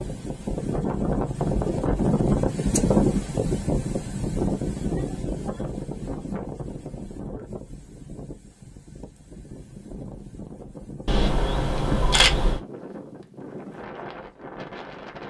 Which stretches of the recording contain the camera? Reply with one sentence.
The camera can be heard from 11.1 to 12.6 s.